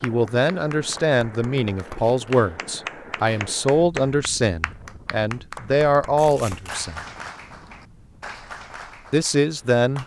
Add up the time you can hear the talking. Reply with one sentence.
You can hear the talking for 8 seconds altogether.